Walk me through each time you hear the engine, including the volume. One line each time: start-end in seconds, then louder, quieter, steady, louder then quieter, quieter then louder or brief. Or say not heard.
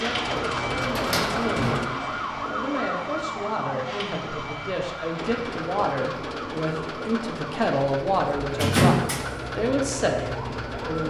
0.0-1.9 brief
5.2-11.0 steady.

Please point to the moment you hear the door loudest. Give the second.
9 s.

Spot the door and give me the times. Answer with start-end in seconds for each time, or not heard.
0.8-2.5, 8.5-9.2.